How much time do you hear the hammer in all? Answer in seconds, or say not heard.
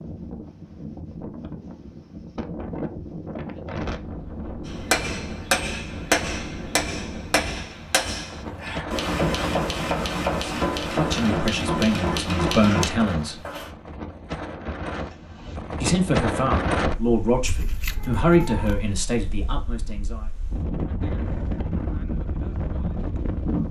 9 s.